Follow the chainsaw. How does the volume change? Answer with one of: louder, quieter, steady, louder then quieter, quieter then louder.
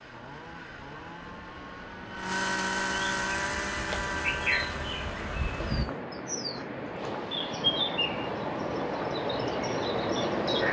louder then quieter.